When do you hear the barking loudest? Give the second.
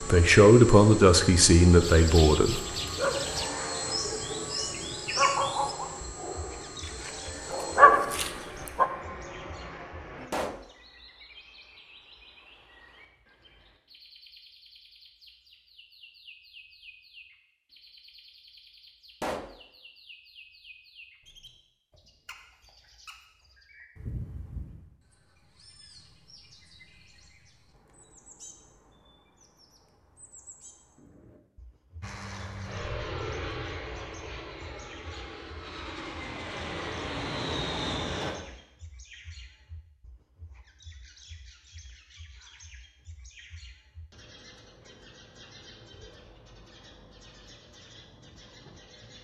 8 s.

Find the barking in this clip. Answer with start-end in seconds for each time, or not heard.
2.9-8.8.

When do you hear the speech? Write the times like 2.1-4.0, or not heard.
0.0-2.6.